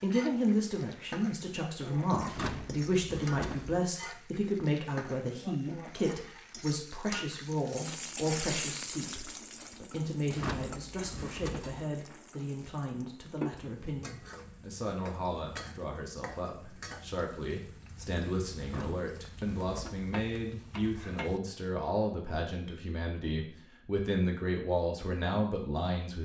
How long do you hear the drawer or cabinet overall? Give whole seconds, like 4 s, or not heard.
5 s.